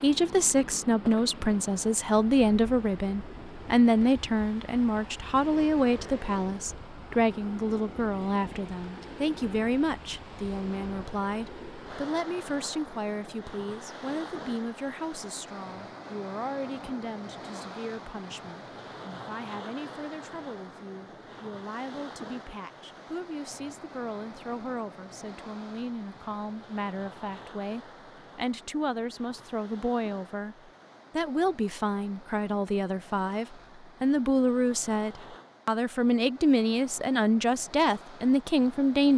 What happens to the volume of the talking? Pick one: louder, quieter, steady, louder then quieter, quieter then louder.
quieter then louder.